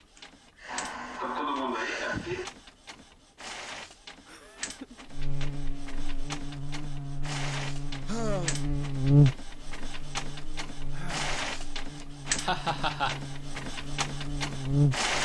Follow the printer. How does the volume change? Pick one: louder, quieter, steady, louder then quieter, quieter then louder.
louder.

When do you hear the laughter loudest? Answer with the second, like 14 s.
13 s.